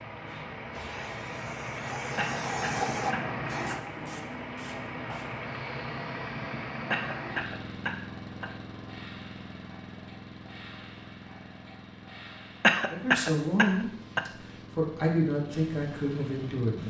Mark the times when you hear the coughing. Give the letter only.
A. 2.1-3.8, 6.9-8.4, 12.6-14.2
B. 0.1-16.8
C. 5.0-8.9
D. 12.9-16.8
A.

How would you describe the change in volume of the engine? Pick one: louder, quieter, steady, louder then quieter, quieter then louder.
quieter.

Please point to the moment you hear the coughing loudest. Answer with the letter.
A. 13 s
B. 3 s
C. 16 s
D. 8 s
A.